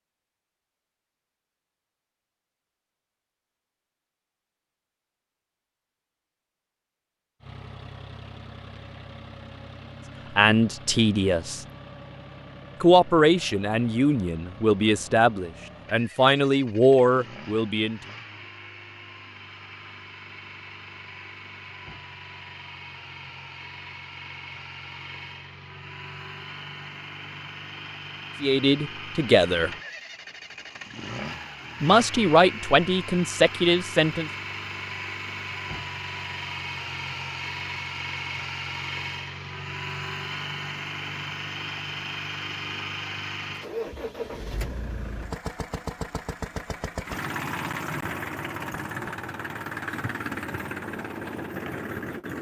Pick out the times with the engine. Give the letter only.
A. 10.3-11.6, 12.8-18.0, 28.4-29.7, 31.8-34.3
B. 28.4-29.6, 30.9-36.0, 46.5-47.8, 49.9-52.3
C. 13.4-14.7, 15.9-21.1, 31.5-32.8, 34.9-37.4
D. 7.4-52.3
D.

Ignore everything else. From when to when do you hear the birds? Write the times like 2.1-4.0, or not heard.
not heard.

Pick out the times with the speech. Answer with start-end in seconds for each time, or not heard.
10.3-11.6, 12.8-18.0, 28.4-29.7, 31.8-34.3.